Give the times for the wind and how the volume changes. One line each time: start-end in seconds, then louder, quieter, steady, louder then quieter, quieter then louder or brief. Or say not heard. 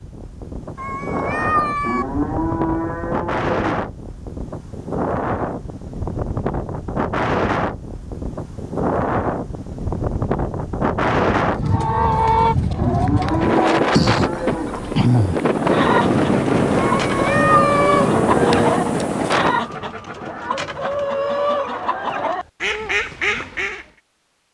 0.0-19.8 louder.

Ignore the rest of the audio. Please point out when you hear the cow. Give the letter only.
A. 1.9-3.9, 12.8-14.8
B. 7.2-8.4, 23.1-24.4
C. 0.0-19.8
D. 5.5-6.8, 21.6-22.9
A.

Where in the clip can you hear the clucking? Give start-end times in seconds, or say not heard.
11.6-23.9.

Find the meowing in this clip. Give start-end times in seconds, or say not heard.
0.8-2.0, 16.8-18.1.